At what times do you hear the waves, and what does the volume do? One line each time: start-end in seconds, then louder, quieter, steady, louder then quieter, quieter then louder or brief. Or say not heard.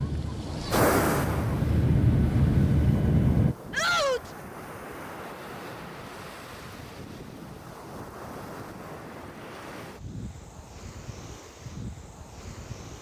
0.0-12.9 quieter.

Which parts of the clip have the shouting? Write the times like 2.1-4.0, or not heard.
3.7-4.3.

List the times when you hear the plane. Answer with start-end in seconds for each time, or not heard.
0.0-3.5.